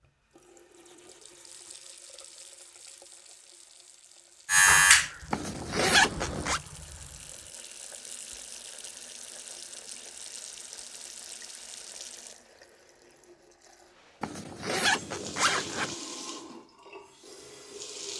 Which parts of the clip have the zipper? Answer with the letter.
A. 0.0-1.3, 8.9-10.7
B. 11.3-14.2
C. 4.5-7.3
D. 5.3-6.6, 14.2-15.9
D.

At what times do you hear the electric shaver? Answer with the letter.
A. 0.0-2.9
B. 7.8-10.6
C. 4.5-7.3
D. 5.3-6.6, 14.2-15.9
C.